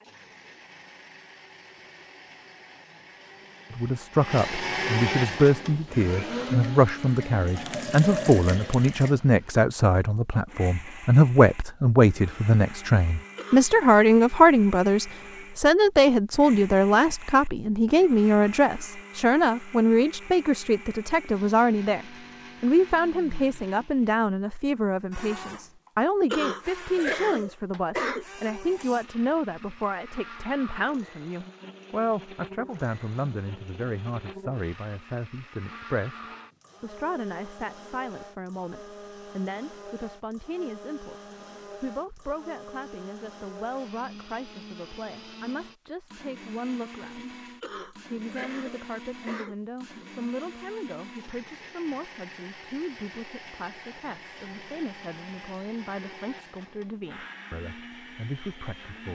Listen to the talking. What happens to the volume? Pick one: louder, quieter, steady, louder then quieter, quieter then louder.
quieter.